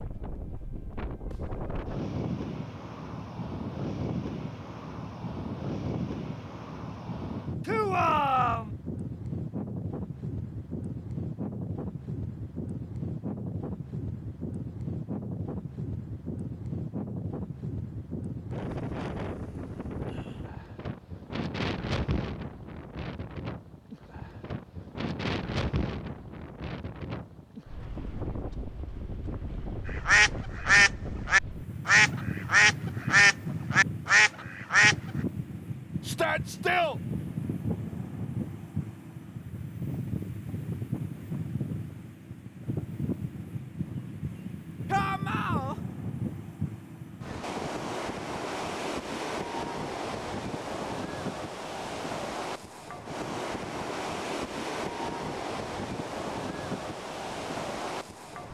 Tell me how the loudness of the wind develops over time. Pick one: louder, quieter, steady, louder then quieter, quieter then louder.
steady.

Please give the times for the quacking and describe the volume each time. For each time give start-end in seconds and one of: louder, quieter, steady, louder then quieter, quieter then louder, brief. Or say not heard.
29.9-35.0 steady.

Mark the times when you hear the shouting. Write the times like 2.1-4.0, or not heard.
7.7-8.7, 36.0-37.0, 44.9-45.8.